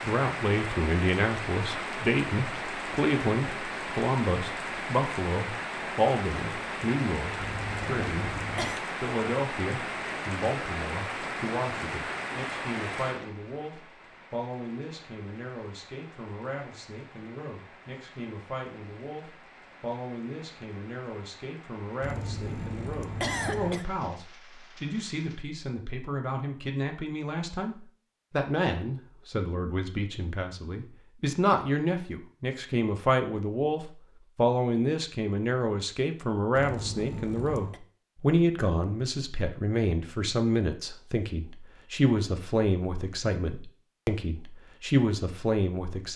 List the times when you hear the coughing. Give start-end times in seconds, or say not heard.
7.4-8.8, 22.0-23.9, 36.5-37.8.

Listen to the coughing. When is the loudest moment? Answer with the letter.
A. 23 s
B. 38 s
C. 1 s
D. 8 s
A.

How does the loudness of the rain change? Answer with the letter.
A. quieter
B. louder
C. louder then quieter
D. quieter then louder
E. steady
A.